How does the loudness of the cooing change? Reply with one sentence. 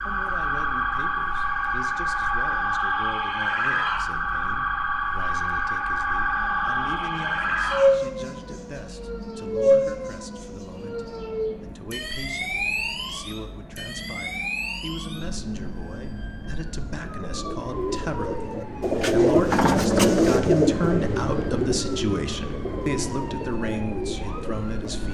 The volume of the cooing goes up, then down.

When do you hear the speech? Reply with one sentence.
The speech can be heard from 0.1 to 25.0 s.